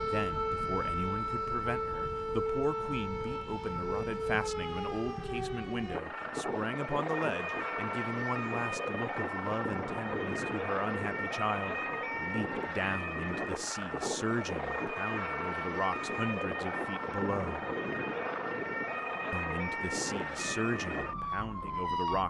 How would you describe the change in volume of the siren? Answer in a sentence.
The loudness of the siren stays about the same.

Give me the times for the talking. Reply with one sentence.
You can hear the talking from 0.0 to 17.6 s and from 19.3 to 22.2 s.